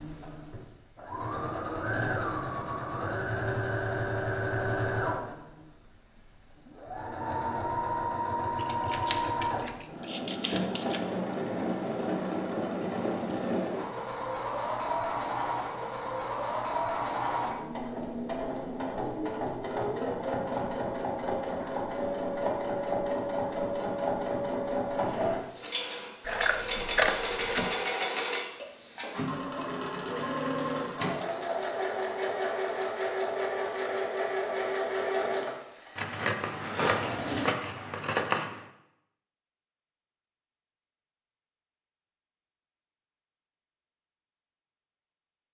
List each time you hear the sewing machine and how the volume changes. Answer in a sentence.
You can hear the sewing machine from 0.0 to 37.5 s, at a steady volume.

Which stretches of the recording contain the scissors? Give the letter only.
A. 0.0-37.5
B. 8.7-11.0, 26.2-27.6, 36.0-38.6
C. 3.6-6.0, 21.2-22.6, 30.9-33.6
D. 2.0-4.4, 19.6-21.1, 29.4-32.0
B.